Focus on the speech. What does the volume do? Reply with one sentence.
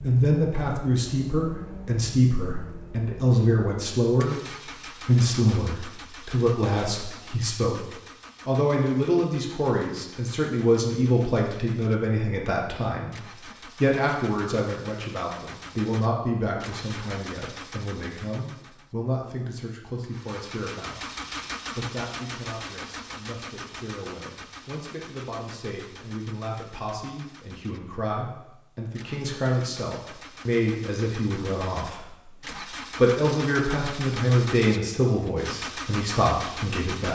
The loudness of the speech goes down, then up.